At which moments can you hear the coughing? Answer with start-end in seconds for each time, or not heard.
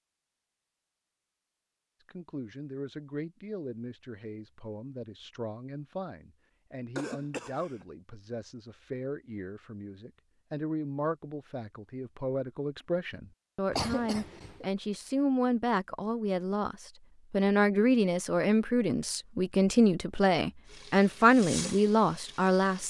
7.0-7.8, 13.7-14.7.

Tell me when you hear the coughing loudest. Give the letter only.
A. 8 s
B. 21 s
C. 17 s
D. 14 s
D.